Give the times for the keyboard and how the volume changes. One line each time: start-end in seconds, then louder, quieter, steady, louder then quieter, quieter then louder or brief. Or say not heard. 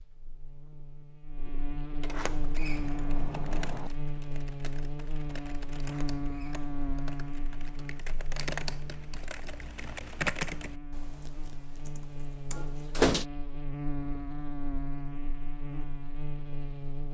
2.4-12.8 louder then quieter.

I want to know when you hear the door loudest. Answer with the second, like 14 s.
13 s.